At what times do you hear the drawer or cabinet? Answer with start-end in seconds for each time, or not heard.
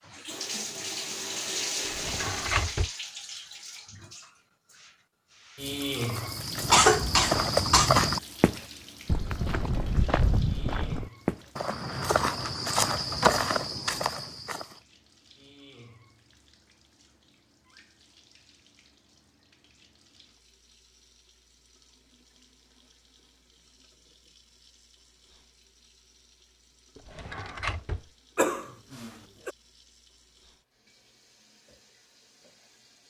1.8-2.9, 11.7-13.5, 26.9-28.1.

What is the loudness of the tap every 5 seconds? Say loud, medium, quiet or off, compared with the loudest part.
loud, loud, quiet, quiet, quiet, quiet, quiet.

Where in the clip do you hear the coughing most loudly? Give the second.
7 s.